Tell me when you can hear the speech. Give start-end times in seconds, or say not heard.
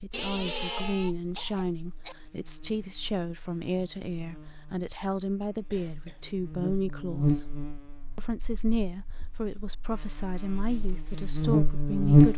0.0-7.5, 8.2-12.3.